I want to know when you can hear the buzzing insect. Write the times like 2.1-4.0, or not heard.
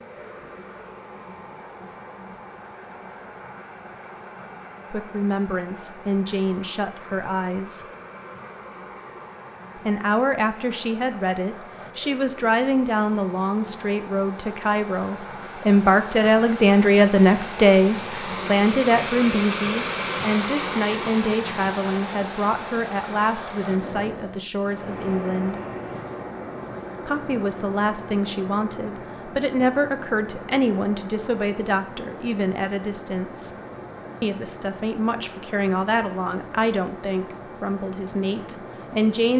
not heard.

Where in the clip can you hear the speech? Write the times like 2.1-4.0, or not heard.
4.9-7.8, 9.8-25.6, 27.1-33.5, 34.2-39.3.